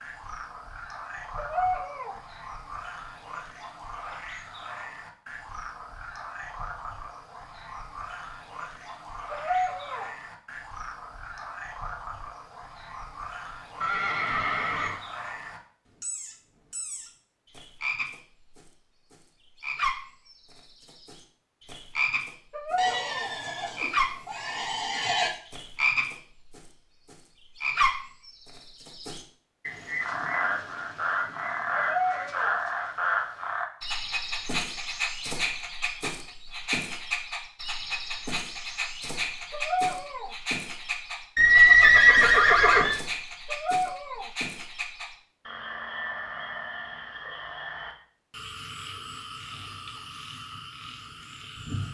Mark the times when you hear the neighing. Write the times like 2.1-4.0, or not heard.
13.8-15.0, 22.8-25.3, 41.4-43.0.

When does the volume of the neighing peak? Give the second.
42 s.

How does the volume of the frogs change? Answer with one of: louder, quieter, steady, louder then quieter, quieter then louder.
louder then quieter.